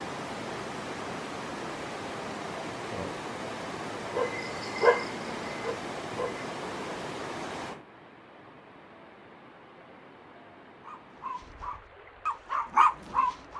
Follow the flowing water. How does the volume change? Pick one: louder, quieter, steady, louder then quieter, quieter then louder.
quieter.